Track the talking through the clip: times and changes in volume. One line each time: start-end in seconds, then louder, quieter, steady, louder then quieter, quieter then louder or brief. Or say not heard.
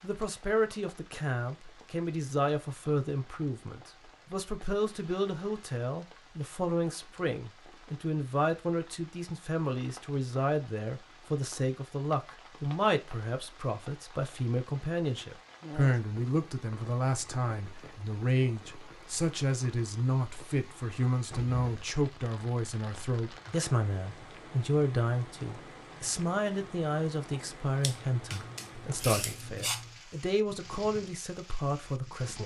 0.0-32.4 steady.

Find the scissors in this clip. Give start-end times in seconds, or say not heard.
27.8-29.9.